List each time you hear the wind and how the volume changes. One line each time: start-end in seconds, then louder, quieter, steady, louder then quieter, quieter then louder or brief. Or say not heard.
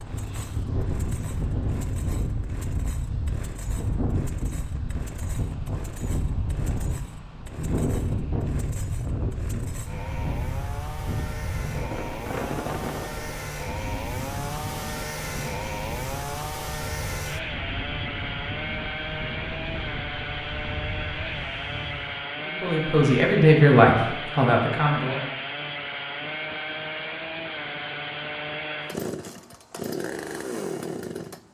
0.0-22.3 quieter.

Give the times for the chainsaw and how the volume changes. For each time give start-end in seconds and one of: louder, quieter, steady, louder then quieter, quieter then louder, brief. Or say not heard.
0.0-31.4 louder.